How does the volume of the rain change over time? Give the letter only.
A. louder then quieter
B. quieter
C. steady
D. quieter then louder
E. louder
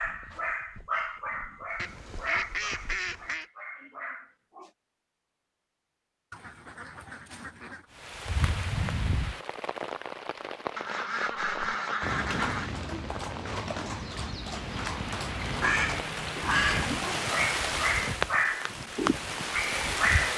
D.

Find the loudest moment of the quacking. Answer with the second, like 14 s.
17 s.